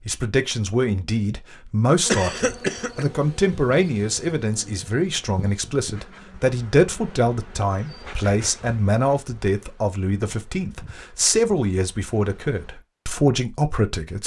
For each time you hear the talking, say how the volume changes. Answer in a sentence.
The talking can be heard from 0.1 to 14.2 s, at a steady volume.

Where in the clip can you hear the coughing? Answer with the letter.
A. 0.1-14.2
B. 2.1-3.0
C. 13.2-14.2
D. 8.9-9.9
B.